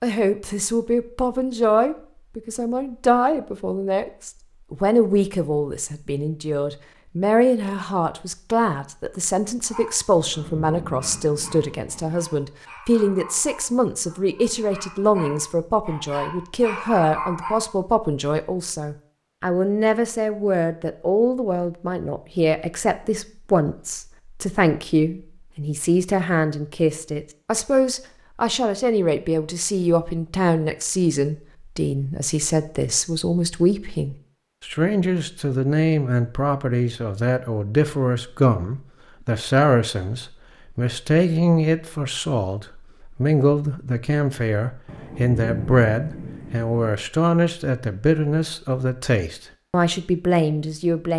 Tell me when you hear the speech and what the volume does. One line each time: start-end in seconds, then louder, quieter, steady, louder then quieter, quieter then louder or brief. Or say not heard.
0.0-51.1 steady.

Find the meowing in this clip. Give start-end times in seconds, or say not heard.
not heard.